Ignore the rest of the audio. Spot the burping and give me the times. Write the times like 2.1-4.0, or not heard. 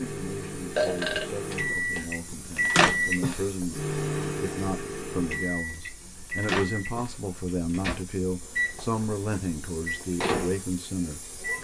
0.8-2.0.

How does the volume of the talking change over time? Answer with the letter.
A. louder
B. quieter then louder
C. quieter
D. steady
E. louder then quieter
A.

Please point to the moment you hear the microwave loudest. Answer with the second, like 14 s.
3 s.